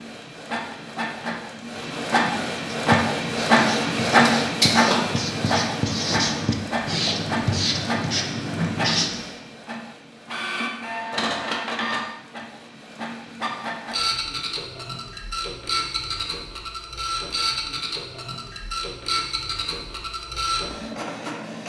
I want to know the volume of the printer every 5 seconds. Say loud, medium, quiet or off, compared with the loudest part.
loud, medium, medium, medium, medium.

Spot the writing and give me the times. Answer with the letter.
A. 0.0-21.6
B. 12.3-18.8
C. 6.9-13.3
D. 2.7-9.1
D.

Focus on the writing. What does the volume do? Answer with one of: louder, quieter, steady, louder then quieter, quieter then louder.
louder.